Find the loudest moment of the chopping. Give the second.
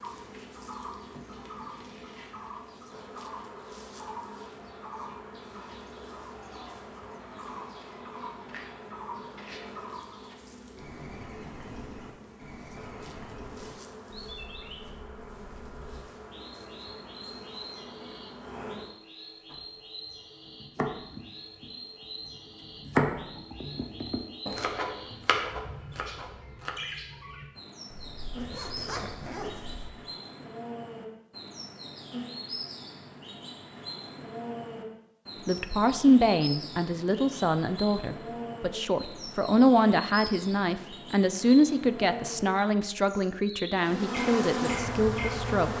23 s.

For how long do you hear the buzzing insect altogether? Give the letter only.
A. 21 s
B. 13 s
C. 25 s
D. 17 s
A.